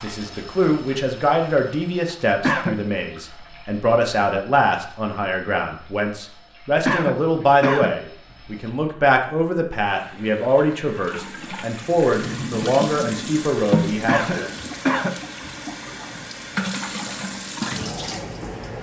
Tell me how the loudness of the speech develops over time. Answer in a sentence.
The volume of the speech stays about the same.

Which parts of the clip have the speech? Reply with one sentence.
You can hear the speech from 0.0 to 14.5 s.